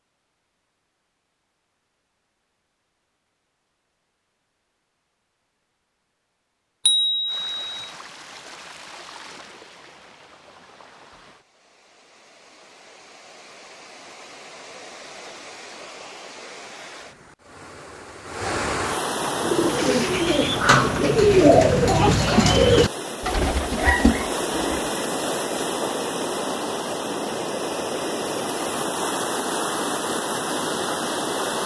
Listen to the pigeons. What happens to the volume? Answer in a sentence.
The loudness of the pigeons goes up, then down.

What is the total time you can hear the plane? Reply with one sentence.
You can't hear the plane here.